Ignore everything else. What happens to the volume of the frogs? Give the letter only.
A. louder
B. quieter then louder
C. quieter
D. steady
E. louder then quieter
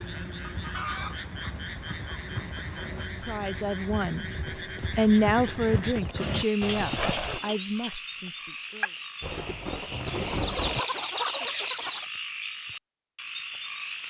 D.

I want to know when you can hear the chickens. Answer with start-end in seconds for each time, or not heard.
0.4-3.0, 5.8-7.6, 9.7-12.1.